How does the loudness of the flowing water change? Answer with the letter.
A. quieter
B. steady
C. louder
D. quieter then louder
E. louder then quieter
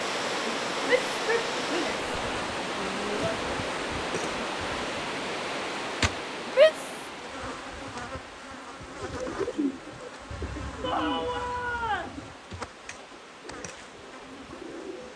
A.